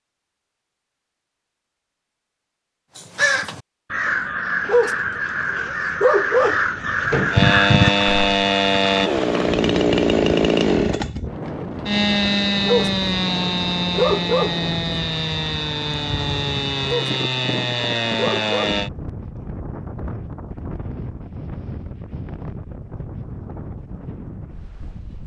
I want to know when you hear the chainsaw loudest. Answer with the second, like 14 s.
10 s.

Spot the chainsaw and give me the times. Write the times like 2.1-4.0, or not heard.
7.3-18.9.